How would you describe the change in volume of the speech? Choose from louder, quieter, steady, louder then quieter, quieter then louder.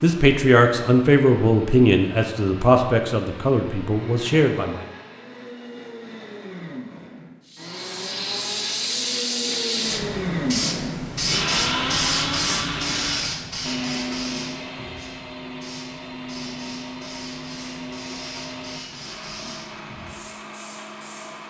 quieter.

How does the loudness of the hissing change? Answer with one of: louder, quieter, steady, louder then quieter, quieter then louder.
quieter.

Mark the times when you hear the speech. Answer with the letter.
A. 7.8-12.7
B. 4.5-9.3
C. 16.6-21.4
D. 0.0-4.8
D.